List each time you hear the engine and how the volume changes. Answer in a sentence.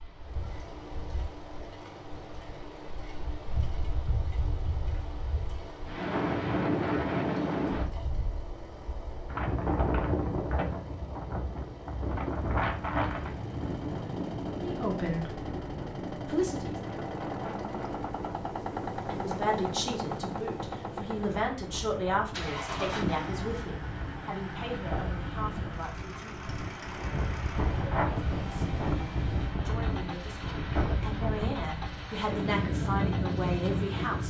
You can hear the engine from 0.0 to 34.2 s, getting louder then quieter.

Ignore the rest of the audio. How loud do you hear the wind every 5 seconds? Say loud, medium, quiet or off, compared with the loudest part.
quiet, loud, loud, medium, medium, loud, loud.